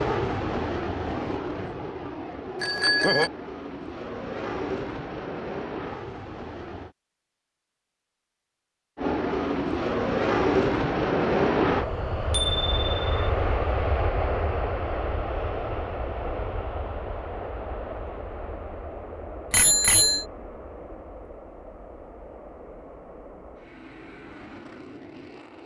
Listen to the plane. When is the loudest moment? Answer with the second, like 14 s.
11 s.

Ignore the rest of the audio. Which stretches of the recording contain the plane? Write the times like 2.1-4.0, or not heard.
0.0-7.0, 8.9-25.6.